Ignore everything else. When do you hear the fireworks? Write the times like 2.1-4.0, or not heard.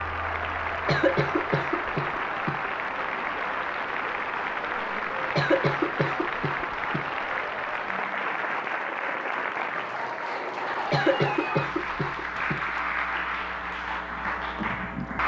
not heard.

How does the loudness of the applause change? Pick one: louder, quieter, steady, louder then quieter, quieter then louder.
steady.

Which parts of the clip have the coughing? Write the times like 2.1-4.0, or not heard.
0.8-2.6, 5.2-7.1, 10.8-12.7.